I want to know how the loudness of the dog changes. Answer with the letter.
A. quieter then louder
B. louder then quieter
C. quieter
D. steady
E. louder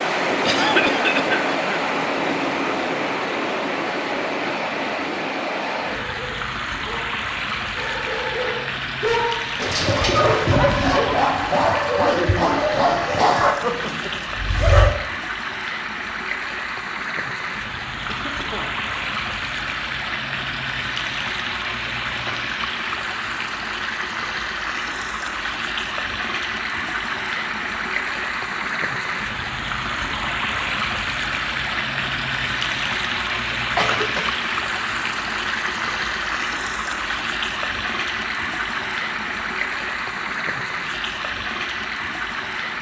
E.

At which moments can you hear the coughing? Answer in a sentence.
You can hear the coughing from 0.5 to 1.8 s, from 18.1 to 18.8 s and from 33.8 to 34.4 s.